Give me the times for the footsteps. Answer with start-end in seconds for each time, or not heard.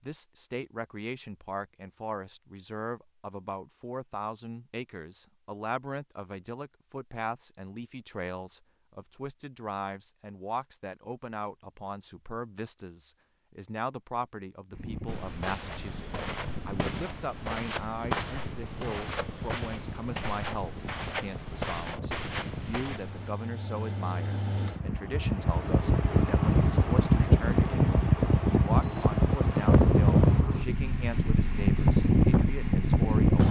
15.1-23.4.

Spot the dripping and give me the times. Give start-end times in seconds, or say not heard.
not heard.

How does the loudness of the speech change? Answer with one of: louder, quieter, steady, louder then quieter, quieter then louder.
steady.